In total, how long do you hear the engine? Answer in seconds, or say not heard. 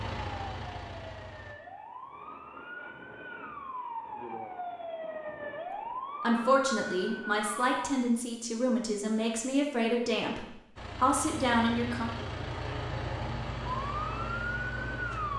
6 s.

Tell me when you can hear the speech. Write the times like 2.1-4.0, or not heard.
6.2-12.1.